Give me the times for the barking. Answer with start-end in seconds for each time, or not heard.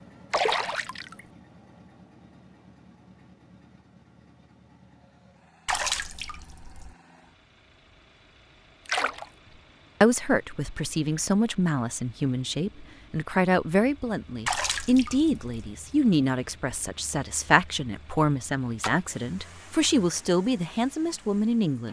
not heard.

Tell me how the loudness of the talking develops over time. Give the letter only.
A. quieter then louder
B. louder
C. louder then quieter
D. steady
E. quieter
D.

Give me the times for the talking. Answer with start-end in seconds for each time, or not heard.
10.0-21.8.